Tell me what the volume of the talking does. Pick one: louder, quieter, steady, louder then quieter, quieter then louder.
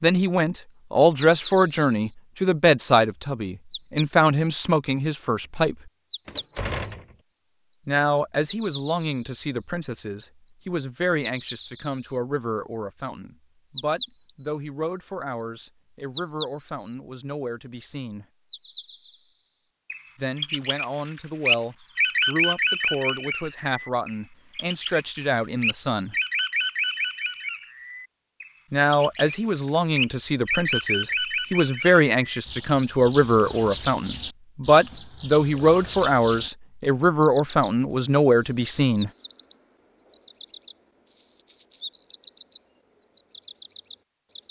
quieter then louder.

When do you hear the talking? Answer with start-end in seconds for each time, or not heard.
0.0-5.9, 7.8-18.2, 20.1-26.1, 28.7-39.1.